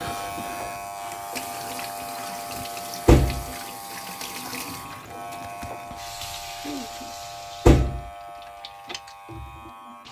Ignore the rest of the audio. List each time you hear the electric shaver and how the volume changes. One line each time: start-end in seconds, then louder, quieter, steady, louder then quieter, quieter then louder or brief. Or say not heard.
0.0-10.0 quieter.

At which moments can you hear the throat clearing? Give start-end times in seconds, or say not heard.
6.6-7.2.